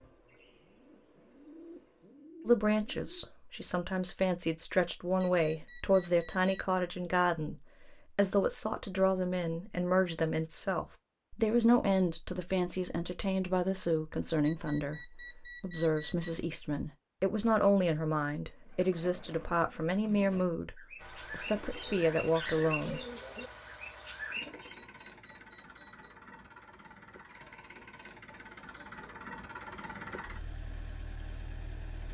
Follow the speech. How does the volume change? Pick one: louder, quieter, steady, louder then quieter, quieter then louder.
steady.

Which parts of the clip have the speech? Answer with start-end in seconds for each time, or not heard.
2.5-23.0.